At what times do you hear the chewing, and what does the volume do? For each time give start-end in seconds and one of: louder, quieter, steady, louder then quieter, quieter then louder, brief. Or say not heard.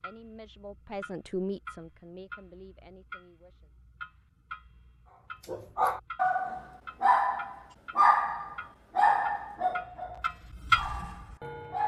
not heard.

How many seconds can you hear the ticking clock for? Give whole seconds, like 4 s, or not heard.
12 s.